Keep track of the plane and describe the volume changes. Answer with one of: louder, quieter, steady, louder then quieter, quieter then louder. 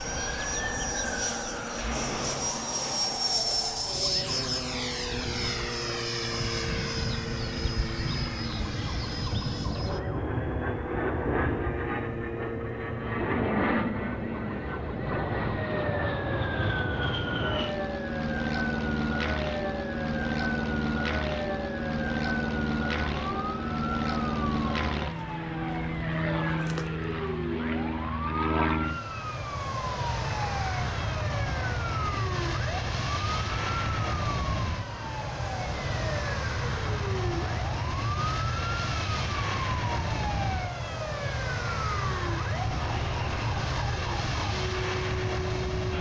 steady.